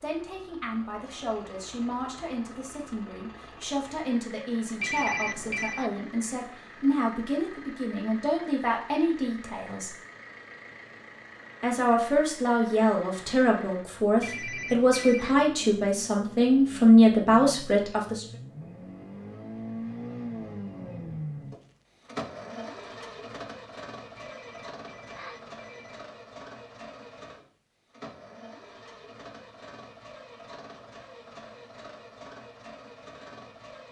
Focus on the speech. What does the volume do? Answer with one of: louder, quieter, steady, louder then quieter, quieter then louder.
louder.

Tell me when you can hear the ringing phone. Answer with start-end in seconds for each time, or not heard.
4.8-5.9, 14.2-15.4, 24.1-26.1.